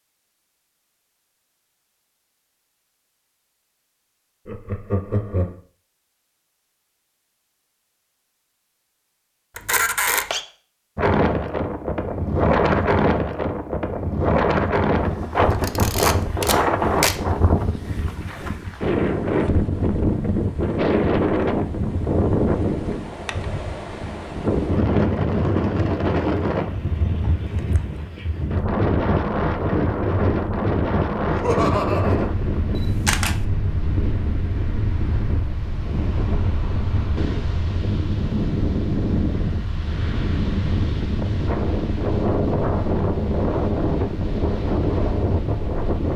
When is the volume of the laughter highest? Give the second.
32 s.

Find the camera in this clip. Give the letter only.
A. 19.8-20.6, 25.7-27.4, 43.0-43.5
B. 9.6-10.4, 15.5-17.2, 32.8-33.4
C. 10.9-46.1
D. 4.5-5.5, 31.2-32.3
B.